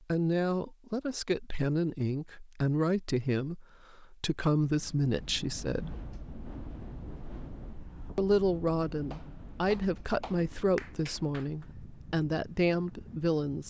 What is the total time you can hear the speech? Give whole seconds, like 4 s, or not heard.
11 s.